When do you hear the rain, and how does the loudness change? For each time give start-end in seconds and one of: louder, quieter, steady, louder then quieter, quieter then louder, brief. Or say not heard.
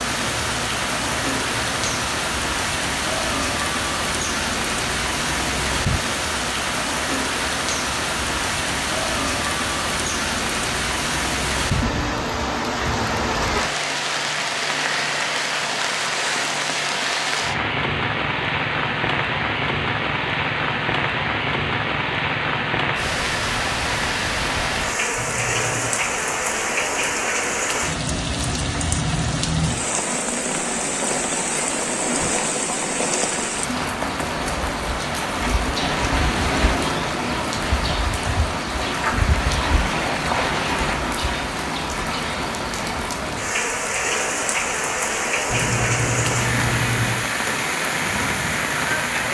0.0-49.2 steady.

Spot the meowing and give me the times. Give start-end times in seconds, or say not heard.
0.1-2.0, 25.1-25.9, 45.5-47.2.